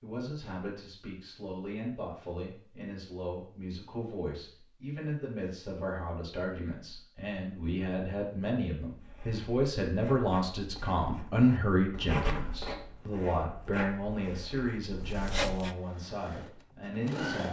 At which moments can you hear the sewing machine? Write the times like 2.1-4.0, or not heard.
15.8-17.4.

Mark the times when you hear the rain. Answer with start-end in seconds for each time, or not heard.
not heard.